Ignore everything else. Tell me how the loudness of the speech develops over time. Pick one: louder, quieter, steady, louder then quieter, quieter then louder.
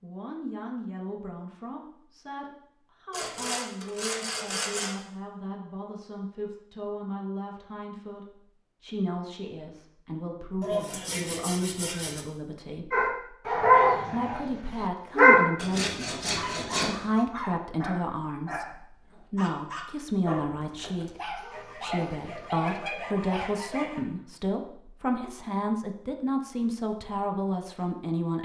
louder.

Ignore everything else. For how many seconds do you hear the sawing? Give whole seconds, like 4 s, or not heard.
8 s.